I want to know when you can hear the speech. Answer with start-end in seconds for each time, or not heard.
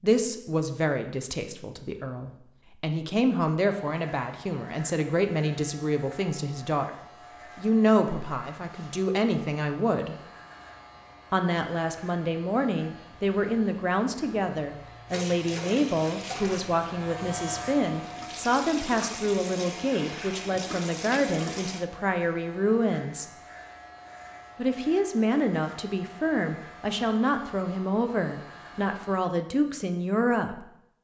0.0-6.9, 7.5-10.2, 11.3-23.2, 24.6-30.6.